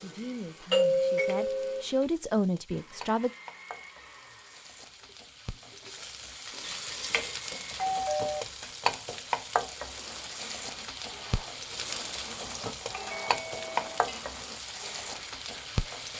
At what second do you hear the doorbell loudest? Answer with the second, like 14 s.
1 s.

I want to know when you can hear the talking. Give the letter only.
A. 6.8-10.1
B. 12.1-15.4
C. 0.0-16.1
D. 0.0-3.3
D.